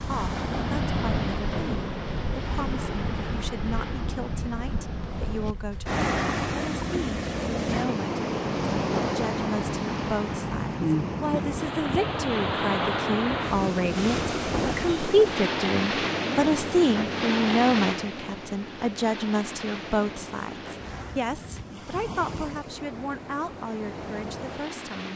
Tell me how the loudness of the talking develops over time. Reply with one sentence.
The volume of the talking goes up, then down.